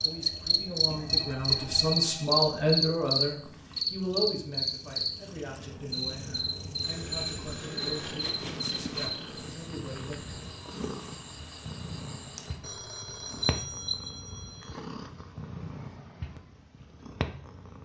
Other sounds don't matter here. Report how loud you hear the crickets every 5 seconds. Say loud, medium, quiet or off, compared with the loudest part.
loud, medium, quiet, off.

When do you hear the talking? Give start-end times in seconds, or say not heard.
0.0-10.4.